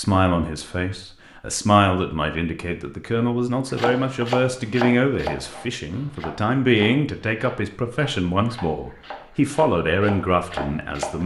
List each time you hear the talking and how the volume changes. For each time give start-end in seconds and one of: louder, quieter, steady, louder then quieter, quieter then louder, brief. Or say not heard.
0.0-11.2 steady.